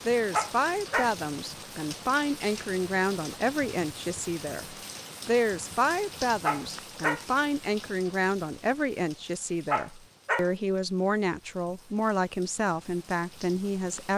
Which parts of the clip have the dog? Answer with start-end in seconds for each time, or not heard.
0.3-1.1, 6.5-7.2, 9.7-10.5.